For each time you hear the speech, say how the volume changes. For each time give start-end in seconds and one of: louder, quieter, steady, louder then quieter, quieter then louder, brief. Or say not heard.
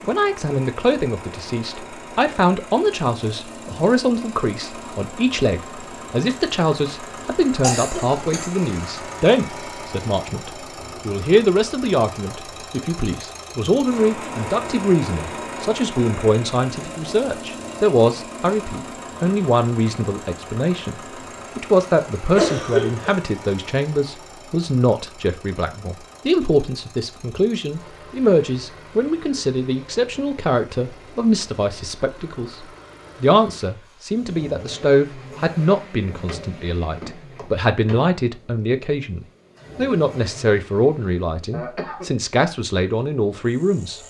0.0-44.0 steady.